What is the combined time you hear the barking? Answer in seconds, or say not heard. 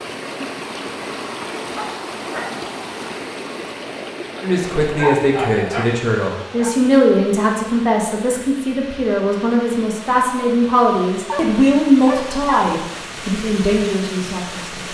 4 s.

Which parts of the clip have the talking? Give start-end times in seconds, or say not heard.
4.4-14.8.